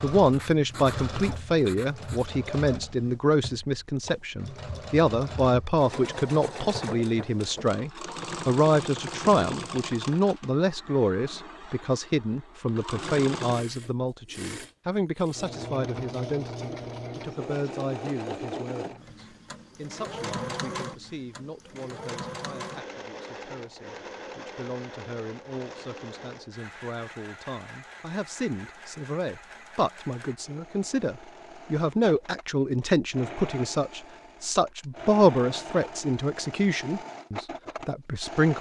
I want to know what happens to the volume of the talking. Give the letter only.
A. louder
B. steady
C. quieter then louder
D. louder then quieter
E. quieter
C.